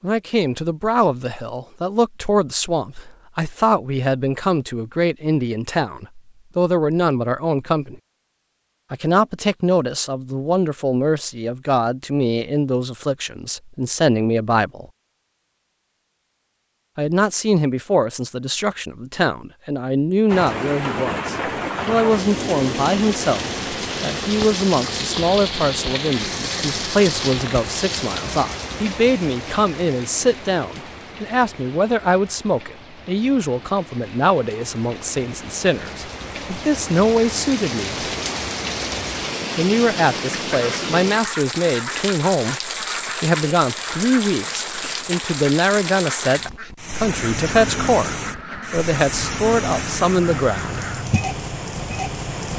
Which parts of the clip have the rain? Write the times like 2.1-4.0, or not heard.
20.2-52.5.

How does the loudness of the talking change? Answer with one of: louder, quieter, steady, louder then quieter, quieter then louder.
steady.